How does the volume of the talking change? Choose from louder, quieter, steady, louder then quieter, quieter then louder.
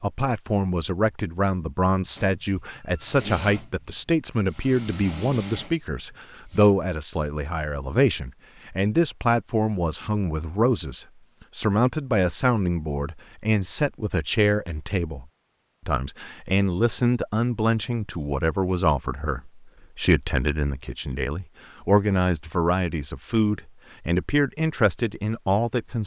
steady.